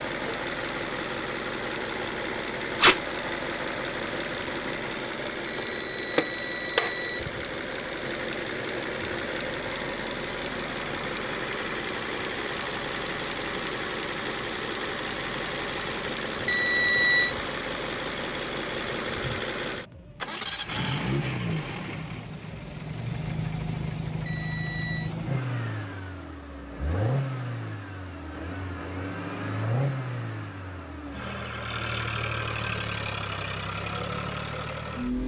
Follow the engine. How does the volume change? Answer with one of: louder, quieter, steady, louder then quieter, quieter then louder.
steady.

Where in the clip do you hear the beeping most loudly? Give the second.
17 s.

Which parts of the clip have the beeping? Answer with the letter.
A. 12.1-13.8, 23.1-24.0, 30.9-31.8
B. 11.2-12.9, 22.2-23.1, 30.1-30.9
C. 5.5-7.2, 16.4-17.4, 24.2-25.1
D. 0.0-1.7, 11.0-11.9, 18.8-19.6
C.